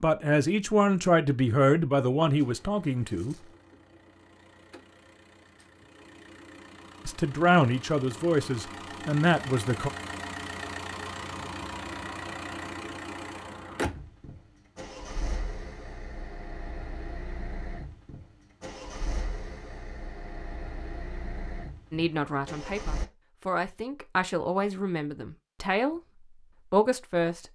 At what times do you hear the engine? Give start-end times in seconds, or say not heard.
2.2-23.1.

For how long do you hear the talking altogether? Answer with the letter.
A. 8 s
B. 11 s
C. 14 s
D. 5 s
B.